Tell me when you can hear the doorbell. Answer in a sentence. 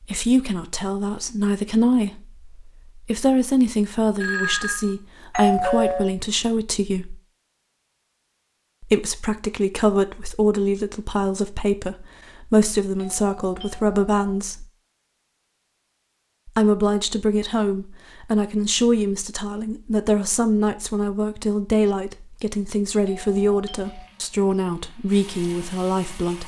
You can hear the doorbell from 4.2 to 6.2 s, from 12.9 to 14.4 s and from 23.1 to 24.1 s.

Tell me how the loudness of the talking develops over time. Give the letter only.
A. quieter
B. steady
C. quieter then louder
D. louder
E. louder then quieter
B.